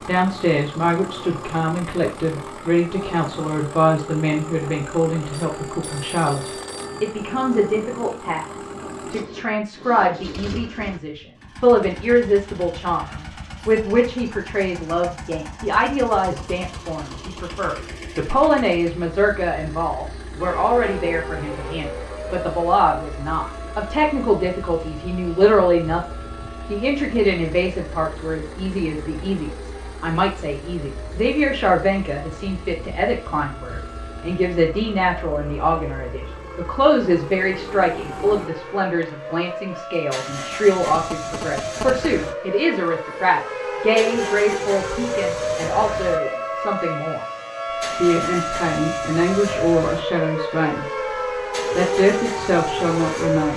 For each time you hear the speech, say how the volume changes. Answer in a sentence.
The speech can be heard from 0.1 to 47.2 s, at a steady volume; briefly from 48.0 to 50.9 s; and briefly from 51.8 to 53.5 s.